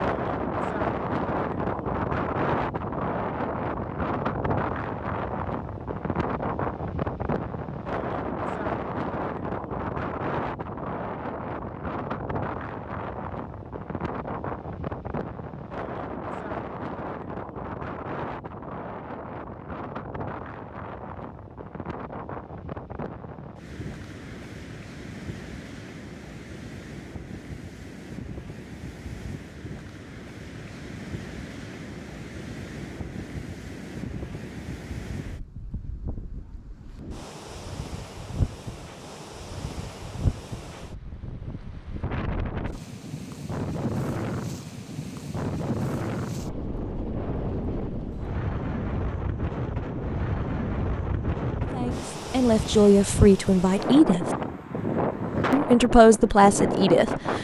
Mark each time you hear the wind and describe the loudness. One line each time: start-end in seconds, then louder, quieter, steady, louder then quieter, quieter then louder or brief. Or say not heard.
0.0-57.3 quieter then louder.